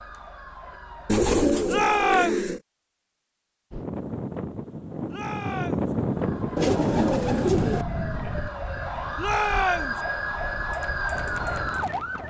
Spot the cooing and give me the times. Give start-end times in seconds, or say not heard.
1.1-2.6, 6.5-7.8.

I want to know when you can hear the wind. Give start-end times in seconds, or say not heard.
3.7-12.2.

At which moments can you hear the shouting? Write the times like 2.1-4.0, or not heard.
1.6-2.5, 5.1-6.0, 9.2-10.0.